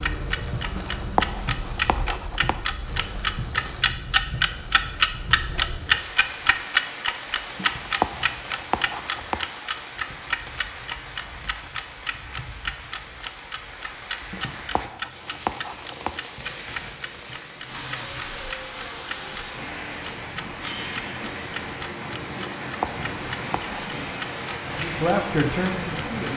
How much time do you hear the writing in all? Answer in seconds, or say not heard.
7 s.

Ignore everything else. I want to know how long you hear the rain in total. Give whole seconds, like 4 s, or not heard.
26 s.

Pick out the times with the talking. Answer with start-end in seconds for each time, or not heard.
24.8-26.3.